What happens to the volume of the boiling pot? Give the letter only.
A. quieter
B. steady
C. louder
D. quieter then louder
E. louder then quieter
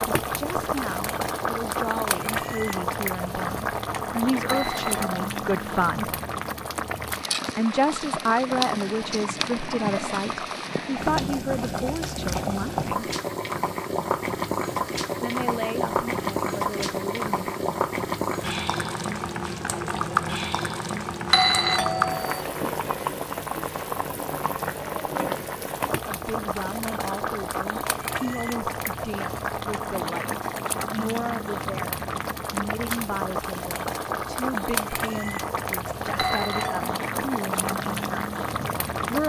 B.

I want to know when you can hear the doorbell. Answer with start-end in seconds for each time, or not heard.
4.5-5.1, 21.3-22.4, 36.1-36.9.